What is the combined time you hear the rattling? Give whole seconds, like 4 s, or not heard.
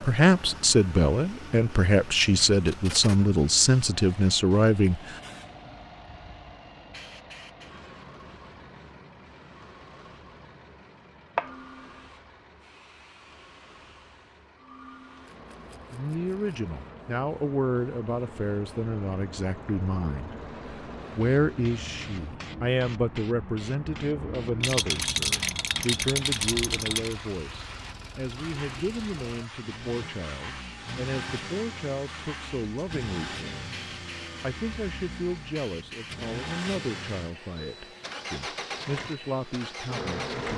4 s.